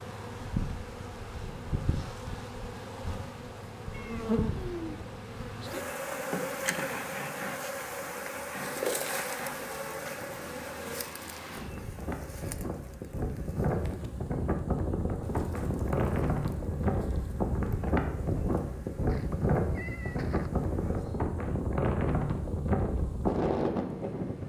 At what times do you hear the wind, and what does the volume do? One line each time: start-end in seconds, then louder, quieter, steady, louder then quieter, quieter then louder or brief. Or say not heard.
0.0-24.4 louder.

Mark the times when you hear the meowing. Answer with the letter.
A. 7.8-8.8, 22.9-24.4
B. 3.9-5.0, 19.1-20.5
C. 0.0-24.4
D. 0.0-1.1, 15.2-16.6
B.